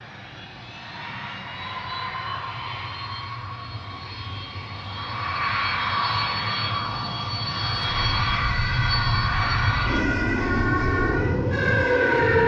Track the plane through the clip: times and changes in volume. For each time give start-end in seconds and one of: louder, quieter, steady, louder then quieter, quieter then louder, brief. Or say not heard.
0.0-12.4 louder.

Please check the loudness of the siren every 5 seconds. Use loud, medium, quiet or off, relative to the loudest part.
off, medium, loud.